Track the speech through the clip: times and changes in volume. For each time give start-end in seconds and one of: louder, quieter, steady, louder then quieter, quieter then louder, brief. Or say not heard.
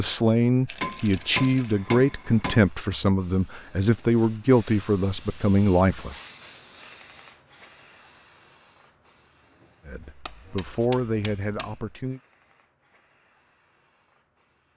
0.0-6.2 steady
9.8-12.2 brief.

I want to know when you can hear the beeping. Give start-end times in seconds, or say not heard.
not heard.